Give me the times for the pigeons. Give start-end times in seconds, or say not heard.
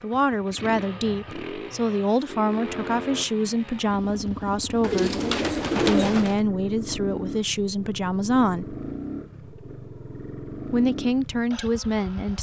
4.8-6.4.